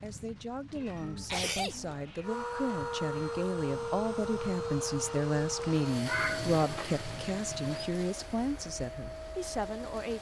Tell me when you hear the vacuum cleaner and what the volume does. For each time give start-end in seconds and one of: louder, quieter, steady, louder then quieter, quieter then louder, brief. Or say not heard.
2.2-10.1 quieter.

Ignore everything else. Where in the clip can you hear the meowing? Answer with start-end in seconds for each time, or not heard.
0.7-2.3, 6.0-6.5.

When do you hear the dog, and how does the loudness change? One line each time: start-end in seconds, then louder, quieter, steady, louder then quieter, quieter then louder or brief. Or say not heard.
not heard.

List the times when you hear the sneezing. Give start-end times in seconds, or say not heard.
1.2-1.9.